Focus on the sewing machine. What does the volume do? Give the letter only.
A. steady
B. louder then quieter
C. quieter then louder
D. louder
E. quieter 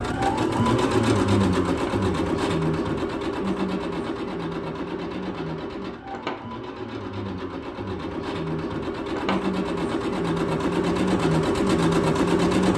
C.